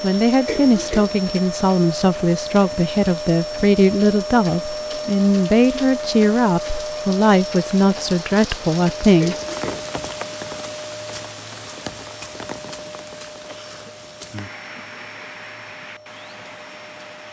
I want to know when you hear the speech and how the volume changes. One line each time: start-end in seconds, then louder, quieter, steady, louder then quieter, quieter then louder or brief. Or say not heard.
0.0-9.3 steady.